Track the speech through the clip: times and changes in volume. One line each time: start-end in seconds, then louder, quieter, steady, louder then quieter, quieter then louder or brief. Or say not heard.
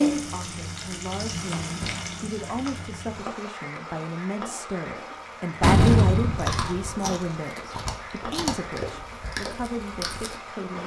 0.1-10.8 louder then quieter.